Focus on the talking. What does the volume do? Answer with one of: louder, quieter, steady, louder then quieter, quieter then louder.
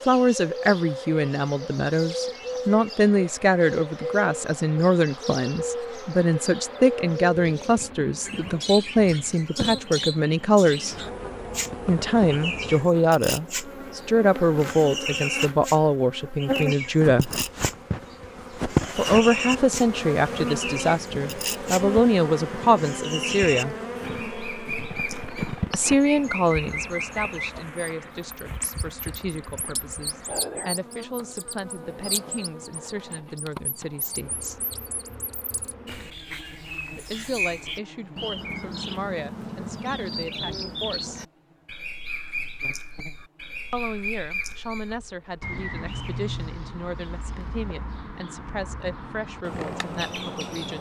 quieter.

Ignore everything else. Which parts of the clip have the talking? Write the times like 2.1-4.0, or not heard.
0.1-10.9, 11.8-17.3, 18.9-23.8, 25.7-34.6, 37.0-41.2, 43.7-50.7.